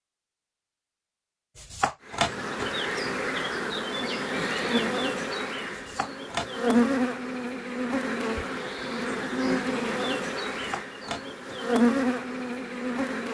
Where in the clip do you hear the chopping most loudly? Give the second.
2 s.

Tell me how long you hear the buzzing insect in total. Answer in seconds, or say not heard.
11 s.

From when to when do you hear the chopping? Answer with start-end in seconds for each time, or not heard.
1.6-2.7, 5.7-6.8, 10.5-11.6.